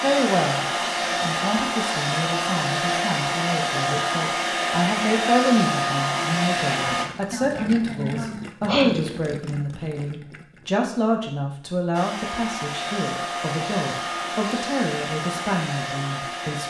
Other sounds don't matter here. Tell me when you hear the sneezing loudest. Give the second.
9 s.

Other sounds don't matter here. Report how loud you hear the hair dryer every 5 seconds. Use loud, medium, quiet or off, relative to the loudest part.
loud, loud, medium, medium.